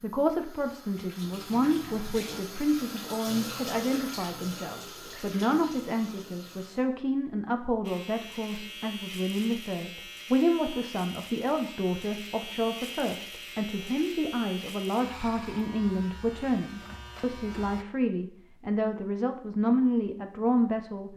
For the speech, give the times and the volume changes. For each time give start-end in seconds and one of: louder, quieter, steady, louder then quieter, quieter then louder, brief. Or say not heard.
0.0-21.1 steady.